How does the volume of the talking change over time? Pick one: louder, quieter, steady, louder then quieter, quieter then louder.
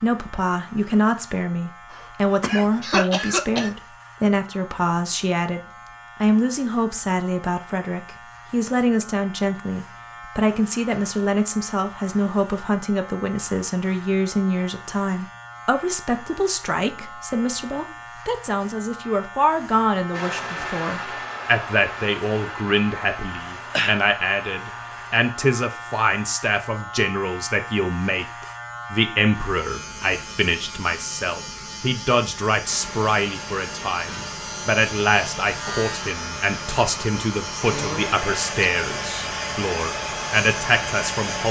steady.